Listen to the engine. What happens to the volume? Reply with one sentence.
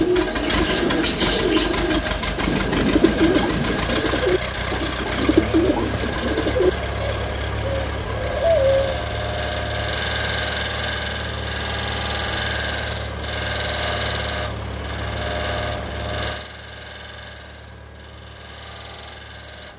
The loudness of the engine goes down.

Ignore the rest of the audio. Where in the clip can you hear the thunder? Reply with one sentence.
The thunder can be heard from 0.4 to 3.9 s.